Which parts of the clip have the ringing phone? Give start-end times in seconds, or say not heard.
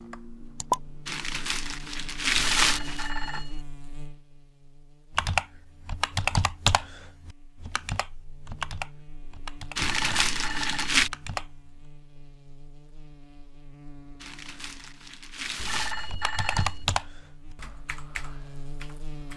2.4-3.6, 9.8-11.1, 15.6-16.9.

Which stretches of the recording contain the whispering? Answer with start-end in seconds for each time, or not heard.
not heard.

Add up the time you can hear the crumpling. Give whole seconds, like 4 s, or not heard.
5 s.